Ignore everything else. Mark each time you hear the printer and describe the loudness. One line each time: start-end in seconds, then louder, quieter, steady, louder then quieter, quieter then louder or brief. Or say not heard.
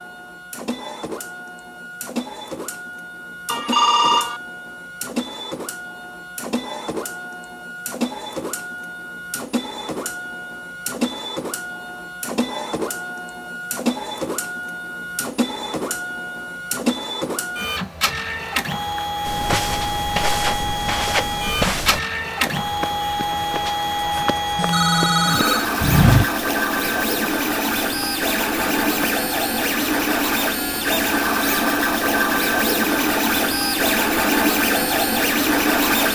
0.0-36.1 louder.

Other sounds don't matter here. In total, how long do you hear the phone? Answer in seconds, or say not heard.
2 s.